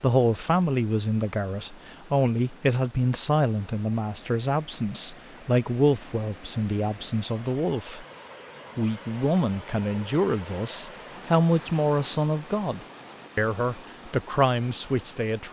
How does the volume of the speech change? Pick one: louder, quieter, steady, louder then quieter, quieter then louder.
steady.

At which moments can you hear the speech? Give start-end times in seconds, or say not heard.
0.0-8.1, 8.8-15.4.